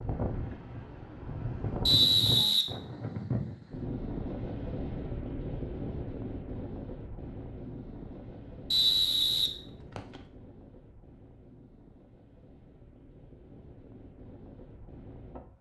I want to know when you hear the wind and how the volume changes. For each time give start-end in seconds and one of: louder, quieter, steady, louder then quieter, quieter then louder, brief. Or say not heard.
0.0-15.5 quieter.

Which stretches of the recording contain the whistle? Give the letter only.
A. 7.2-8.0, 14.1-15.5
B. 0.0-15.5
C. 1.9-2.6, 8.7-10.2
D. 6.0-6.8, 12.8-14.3
C.